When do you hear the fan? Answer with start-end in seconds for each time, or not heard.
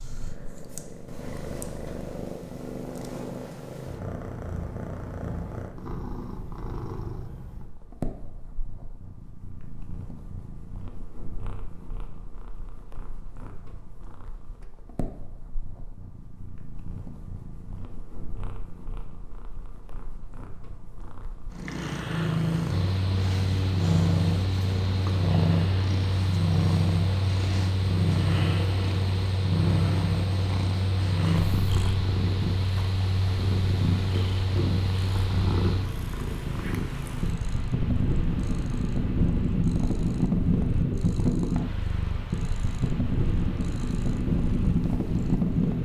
22.6-45.8.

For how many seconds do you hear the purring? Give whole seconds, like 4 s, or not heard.
46 s.